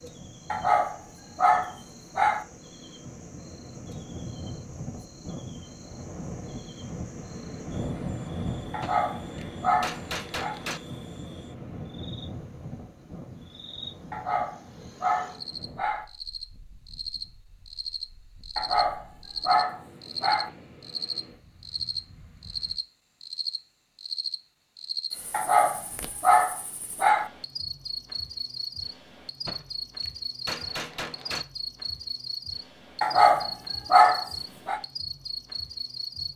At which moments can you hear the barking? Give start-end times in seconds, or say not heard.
0.5-2.5, 8.7-10.6, 14.1-16.1, 18.6-20.5, 25.3-27.3, 33.0-34.8.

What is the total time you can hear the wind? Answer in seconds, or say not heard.
23 s.